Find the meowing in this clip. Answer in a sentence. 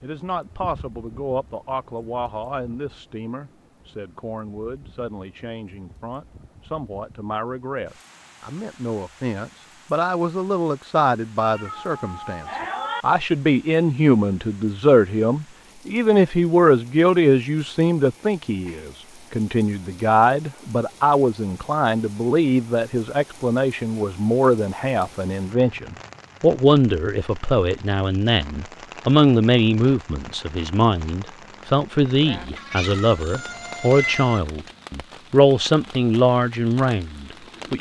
The meowing can be heard from 11.4 to 13.1 s and from 32.5 to 34.4 s.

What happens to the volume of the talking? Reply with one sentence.
The loudness of the talking goes up.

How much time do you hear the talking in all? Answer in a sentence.
The talking can be heard for 38 seconds in total.